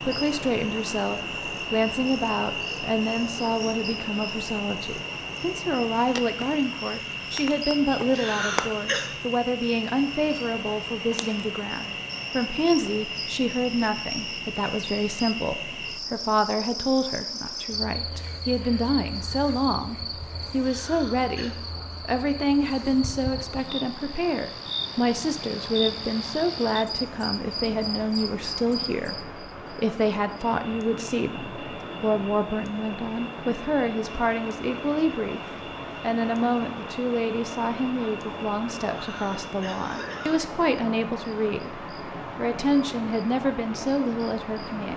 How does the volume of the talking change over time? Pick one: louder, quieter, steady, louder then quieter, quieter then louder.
steady.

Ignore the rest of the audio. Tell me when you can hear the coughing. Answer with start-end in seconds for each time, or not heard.
8.1-9.2, 20.6-21.6, 39.0-40.4.